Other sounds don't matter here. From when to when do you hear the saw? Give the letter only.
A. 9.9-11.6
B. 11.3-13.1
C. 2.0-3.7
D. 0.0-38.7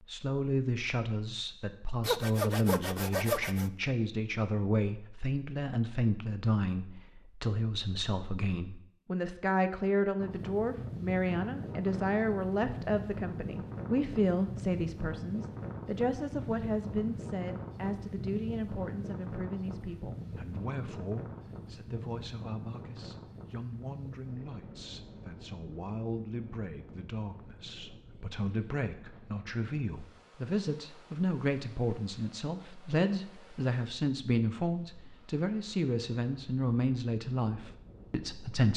C.